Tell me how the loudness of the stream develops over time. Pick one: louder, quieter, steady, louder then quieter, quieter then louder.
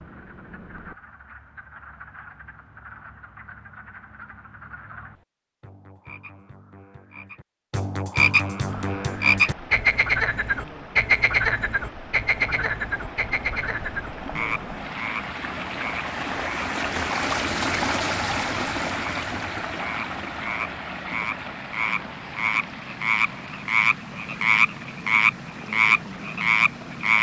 louder then quieter.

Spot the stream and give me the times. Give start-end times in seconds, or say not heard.
8.6-27.1.